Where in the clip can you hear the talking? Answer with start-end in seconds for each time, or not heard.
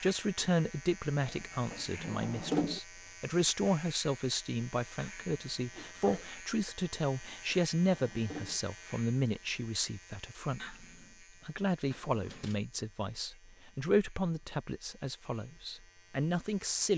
0.0-10.8, 11.4-16.9.